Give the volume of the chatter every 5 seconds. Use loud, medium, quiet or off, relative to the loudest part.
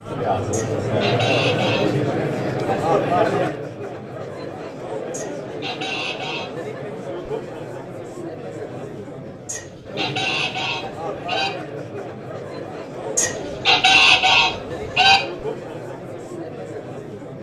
loud, medium, medium, medium.